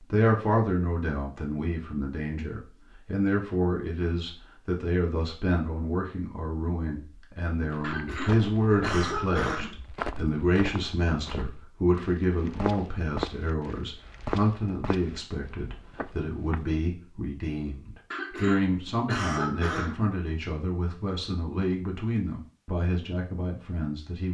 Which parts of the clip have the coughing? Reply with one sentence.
You can hear the coughing from 7.8 to 9.8 s and from 18.1 to 20.0 s.